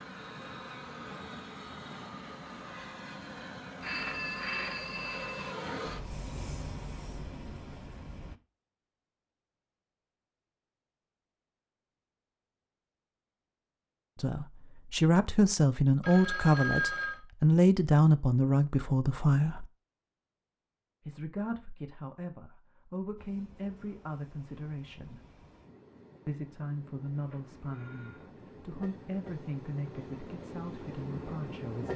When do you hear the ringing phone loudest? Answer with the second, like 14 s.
17 s.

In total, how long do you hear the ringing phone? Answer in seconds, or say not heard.
4 s.